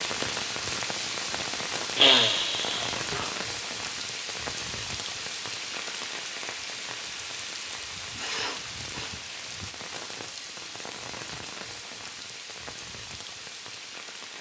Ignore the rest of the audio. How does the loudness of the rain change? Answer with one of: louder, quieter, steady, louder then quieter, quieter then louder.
quieter.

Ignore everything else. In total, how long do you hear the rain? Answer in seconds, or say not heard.
14 s.